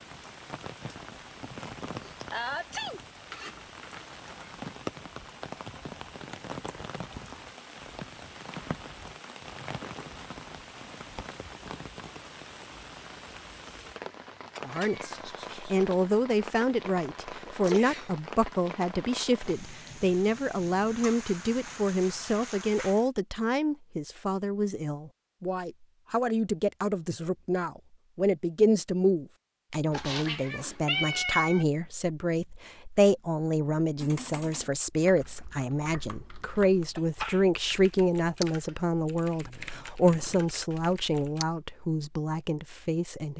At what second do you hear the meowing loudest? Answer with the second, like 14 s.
31 s.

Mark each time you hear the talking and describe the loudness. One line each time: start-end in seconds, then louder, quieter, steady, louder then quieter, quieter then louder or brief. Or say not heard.
14.6-43.3 steady.